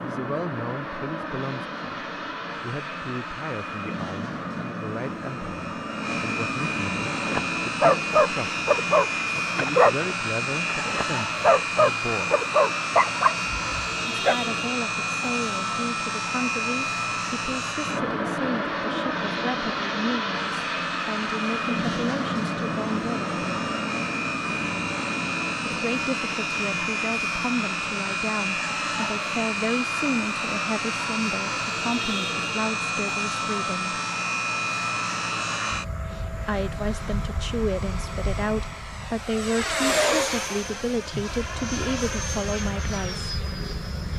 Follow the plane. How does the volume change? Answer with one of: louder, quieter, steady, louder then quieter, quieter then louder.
steady.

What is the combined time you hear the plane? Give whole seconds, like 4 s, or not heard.
44 s.